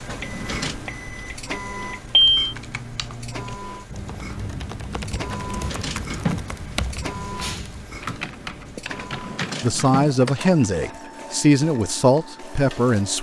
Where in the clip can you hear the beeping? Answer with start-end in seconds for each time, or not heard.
0.2-2.5.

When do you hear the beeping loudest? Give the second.
2 s.